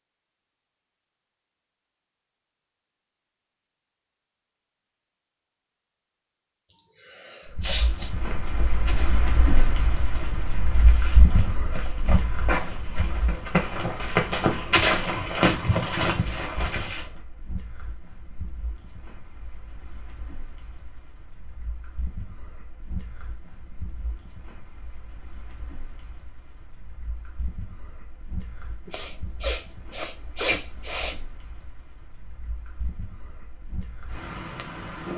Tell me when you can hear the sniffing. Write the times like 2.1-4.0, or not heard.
6.7-8.1, 28.9-31.1.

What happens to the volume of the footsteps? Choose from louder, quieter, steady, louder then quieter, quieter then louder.
louder.